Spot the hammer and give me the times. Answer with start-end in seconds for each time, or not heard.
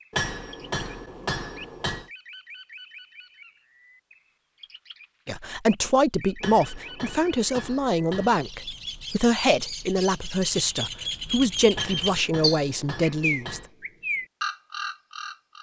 0.1-2.1, 6.4-8.4, 11.7-13.7.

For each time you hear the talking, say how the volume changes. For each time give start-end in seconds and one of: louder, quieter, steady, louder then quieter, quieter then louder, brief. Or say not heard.
5.2-13.6 steady.